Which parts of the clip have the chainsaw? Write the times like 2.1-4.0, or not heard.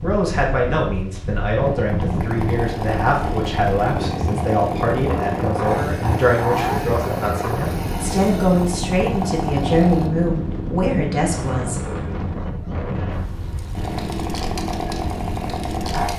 1.8-10.1, 13.8-16.1.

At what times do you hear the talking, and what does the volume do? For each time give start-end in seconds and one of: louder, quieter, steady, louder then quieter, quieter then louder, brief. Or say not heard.
0.0-11.8 steady.